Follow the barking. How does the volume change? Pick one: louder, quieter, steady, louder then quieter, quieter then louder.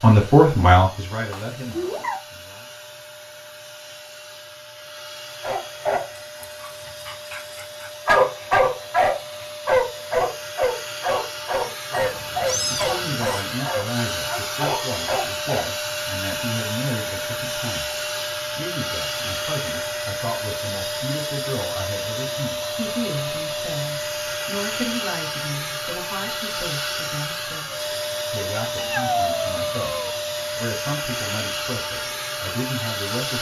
louder then quieter.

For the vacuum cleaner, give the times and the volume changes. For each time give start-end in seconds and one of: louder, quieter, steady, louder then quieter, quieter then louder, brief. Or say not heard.
0.0-33.3 louder.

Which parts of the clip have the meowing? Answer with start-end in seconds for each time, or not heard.
1.3-2.2, 11.9-13.2, 28.8-30.1.